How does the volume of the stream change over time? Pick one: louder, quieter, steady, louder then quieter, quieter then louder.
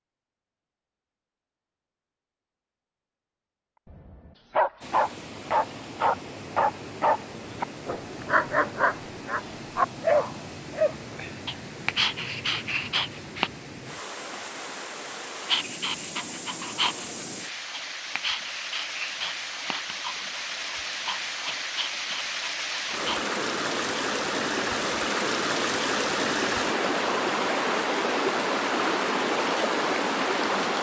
louder.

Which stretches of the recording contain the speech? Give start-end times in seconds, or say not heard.
not heard.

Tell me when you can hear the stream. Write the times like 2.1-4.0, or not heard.
4.8-30.7.